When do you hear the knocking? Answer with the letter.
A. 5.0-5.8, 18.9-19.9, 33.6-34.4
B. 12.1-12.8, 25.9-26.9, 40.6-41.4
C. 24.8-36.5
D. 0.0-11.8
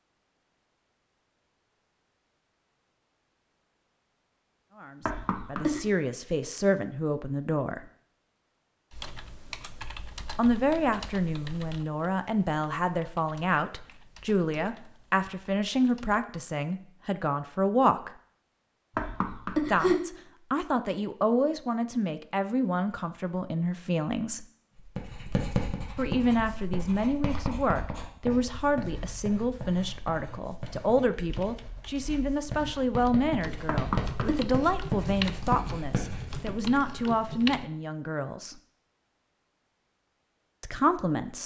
A.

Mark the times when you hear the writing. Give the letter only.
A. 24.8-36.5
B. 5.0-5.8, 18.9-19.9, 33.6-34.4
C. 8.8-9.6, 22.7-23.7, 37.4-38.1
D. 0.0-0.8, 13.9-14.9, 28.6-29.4
A.